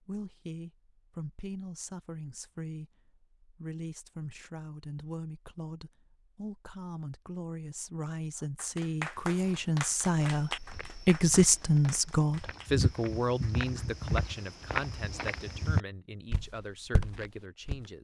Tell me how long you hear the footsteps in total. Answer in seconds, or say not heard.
9 s.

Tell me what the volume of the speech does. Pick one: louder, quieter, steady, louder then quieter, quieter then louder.
louder then quieter.